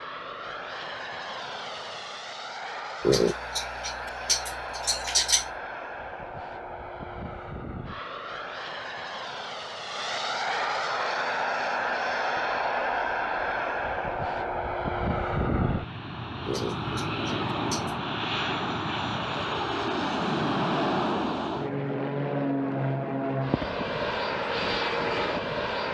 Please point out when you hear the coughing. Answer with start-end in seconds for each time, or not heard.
3.0-5.5, 16.4-17.9.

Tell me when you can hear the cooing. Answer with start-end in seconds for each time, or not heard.
not heard.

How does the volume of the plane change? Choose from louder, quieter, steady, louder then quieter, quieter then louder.
louder.